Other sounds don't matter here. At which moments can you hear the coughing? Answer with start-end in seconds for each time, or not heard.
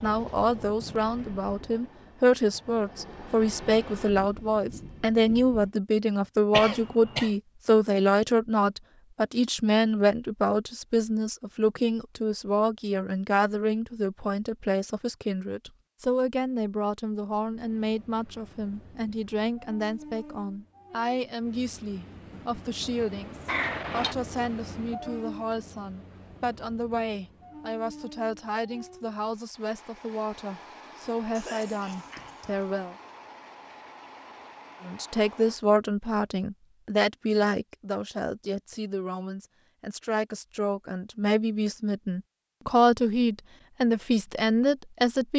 6.5-7.3, 23.4-24.1, 31.4-32.8.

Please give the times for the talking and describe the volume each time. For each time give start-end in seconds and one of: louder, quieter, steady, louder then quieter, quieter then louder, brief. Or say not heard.
0.0-33.0 quieter
34.8-45.3 quieter then louder.